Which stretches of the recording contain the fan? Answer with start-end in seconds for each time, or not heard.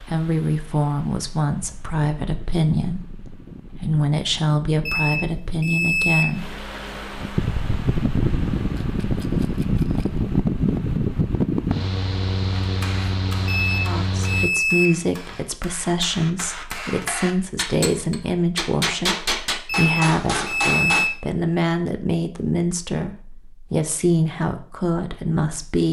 0.0-14.5.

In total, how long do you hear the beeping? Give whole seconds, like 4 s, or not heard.
5 s.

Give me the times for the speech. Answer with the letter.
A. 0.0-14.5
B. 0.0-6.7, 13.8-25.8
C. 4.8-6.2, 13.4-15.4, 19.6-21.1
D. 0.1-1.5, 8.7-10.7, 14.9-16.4
B.